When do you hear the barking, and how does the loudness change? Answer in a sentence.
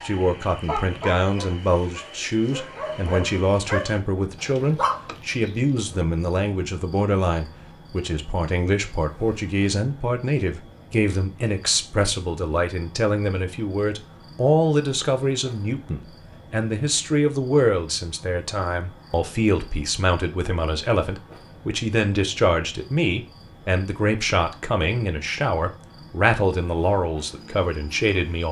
You can hear the barking from 0.0 to 6.0 s, getting quieter then louder.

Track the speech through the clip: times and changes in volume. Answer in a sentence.
You can hear the speech from 0.0 to 28.4 s, at a steady volume.